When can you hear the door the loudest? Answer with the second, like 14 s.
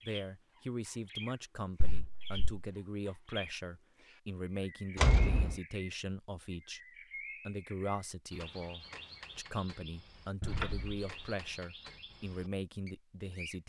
5 s.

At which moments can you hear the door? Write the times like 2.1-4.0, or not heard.
1.8-2.4, 5.0-5.5, 10.4-11.1.